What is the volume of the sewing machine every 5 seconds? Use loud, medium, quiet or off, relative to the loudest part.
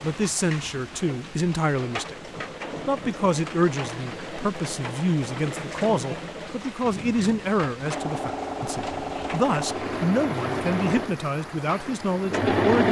quiet, medium, loud.